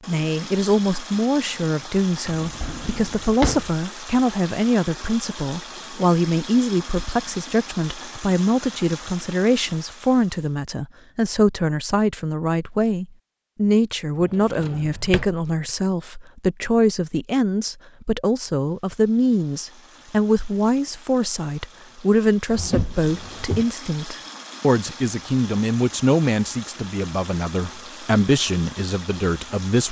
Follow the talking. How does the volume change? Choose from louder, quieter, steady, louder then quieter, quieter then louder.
steady.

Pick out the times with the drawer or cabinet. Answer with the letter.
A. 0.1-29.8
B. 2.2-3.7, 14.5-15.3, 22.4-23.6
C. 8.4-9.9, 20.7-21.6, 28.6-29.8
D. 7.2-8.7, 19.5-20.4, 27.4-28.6
B.